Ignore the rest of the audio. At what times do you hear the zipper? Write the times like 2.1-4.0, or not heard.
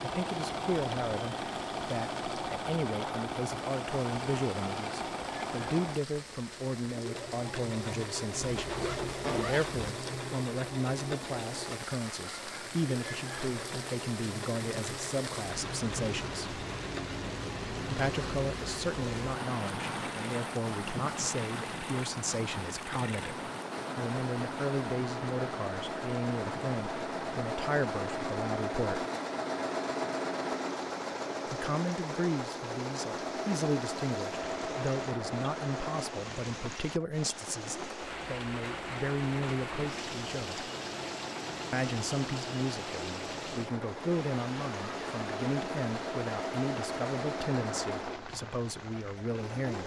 8.6-9.9.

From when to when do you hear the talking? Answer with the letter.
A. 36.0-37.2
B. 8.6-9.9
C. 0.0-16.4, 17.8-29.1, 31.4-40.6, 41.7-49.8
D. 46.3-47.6
C.